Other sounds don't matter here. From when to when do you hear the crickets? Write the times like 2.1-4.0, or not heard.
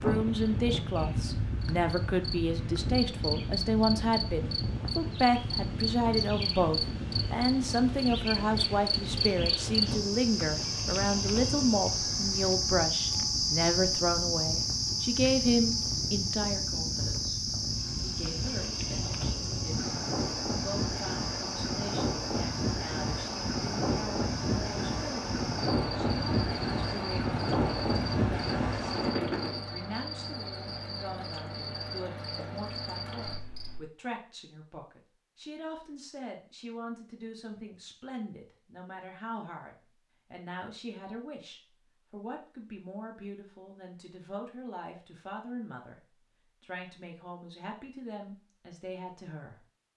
0.0-33.9.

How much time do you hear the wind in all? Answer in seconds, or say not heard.
30 s.